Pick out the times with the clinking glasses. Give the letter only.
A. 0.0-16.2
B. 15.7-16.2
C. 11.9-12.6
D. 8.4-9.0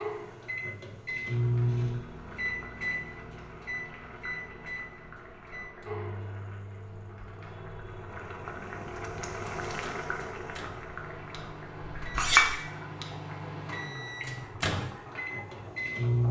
C.